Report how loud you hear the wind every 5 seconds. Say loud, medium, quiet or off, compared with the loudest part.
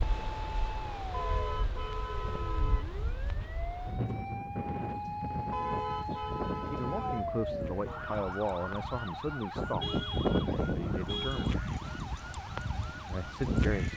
medium, medium, loud.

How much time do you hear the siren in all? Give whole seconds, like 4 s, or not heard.
14 s.